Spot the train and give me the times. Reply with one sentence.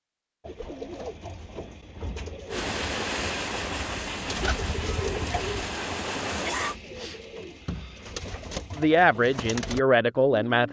The train can be heard from 2.5 to 6.8 s.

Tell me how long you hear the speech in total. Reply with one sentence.
You can hear the speech for 2 seconds altogether.